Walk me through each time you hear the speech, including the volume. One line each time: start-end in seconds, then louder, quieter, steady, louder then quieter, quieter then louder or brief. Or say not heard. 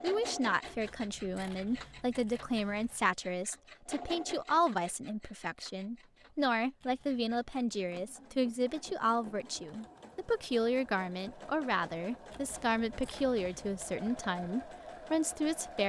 0.0-15.8 steady.